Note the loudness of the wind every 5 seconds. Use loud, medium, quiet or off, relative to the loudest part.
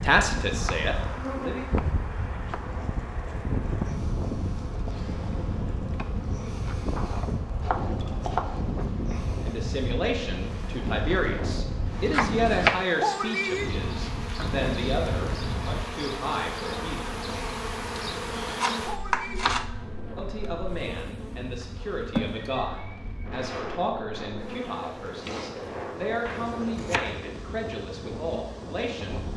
loud, loud, loud, medium, medium, medium.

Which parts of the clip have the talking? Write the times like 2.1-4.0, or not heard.
0.0-1.6, 9.4-17.2, 20.1-29.2.